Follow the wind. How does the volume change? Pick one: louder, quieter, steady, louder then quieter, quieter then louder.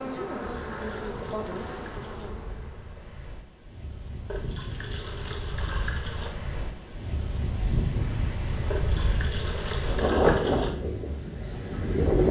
louder.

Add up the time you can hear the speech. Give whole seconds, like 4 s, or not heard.
2 s.